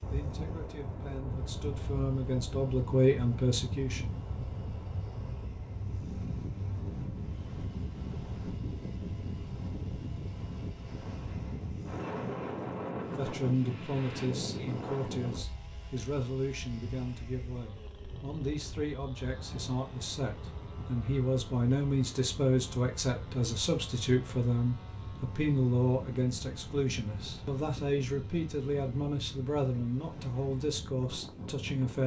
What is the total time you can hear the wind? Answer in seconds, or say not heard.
32 s.